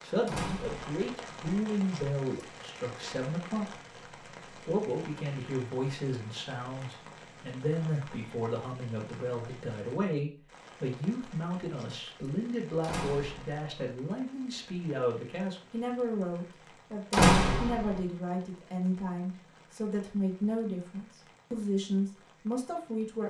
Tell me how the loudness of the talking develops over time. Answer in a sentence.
The volume of the talking stays about the same.